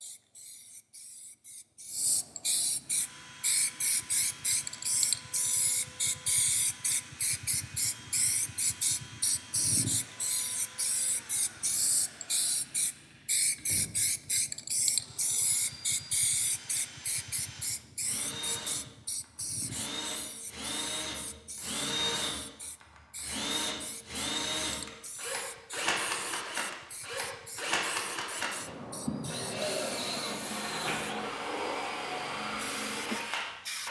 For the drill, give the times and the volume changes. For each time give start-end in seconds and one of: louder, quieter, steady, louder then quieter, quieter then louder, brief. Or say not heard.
2.8-33.8 louder.